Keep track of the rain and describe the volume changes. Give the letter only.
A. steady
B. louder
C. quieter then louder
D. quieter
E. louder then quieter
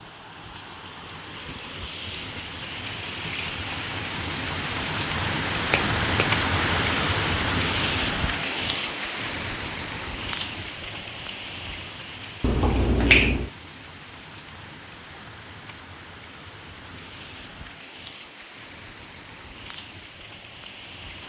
E.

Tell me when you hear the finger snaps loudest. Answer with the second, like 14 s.
13 s.